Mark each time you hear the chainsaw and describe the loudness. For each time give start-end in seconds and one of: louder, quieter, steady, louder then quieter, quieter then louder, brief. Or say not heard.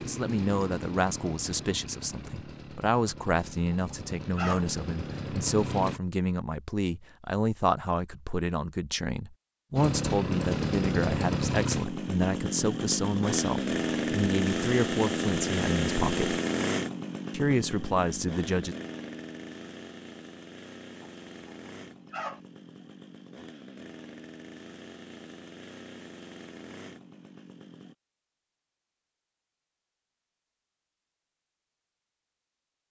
0.0-6.0 quieter then louder
9.8-27.9 quieter.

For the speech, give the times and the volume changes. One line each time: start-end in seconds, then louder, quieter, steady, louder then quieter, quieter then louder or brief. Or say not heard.
0.0-16.4 steady
17.3-18.8 brief.